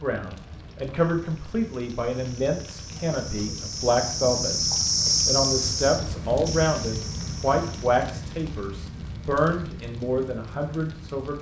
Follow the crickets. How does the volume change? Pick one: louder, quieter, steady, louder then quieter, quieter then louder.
louder then quieter.